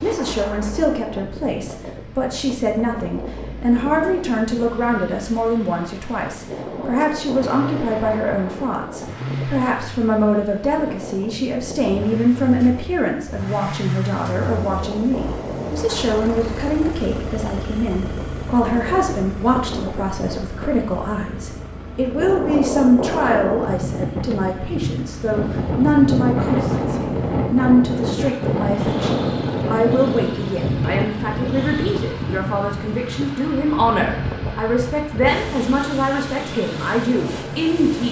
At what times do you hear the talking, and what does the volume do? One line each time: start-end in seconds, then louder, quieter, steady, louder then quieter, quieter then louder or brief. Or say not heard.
0.0-38.0 steady.